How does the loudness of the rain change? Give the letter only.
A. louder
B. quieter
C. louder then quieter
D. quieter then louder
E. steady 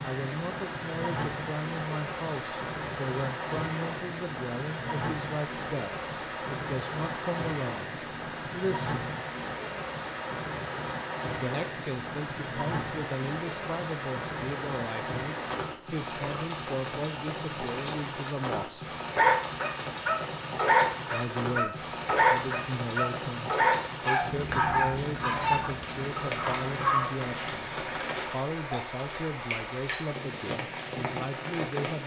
E.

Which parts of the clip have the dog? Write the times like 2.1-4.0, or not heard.
19.1-27.1.